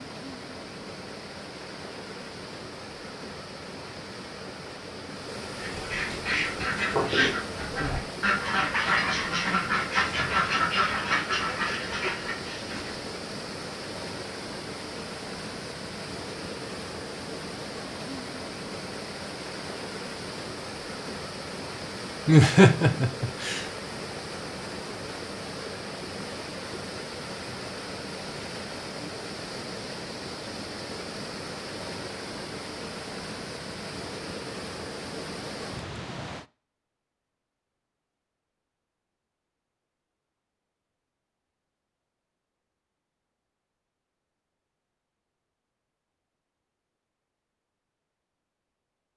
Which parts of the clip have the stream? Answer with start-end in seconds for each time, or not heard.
0.0-36.5.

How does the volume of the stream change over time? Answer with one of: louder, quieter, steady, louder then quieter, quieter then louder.
steady.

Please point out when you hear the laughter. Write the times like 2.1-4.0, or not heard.
22.2-23.6.